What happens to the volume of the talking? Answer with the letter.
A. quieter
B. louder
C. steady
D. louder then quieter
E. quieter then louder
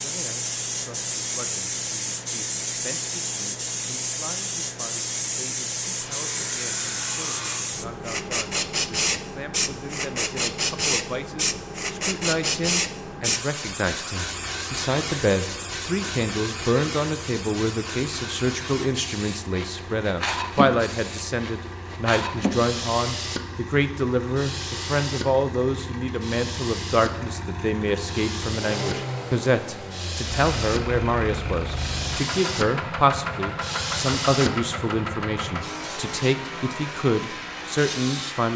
B.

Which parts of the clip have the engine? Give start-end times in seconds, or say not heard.
14.2-38.5.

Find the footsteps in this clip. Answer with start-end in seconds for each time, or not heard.
not heard.